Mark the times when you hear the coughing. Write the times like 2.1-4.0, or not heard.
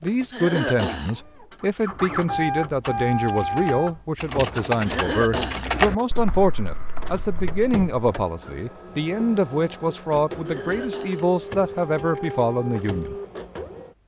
0.3-1.1, 4.8-5.7, 10.4-11.2.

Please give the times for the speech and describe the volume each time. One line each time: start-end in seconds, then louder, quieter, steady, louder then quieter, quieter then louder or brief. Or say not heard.
0.0-13.2 steady.